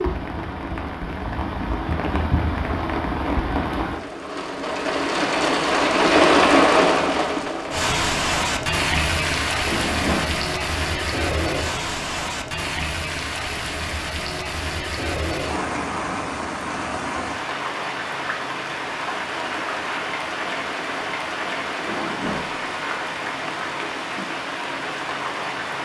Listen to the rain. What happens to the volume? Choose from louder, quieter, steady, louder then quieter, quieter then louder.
louder then quieter.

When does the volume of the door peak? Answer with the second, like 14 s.
10 s.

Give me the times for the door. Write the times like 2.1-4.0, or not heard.
9.7-10.5, 21.8-22.8.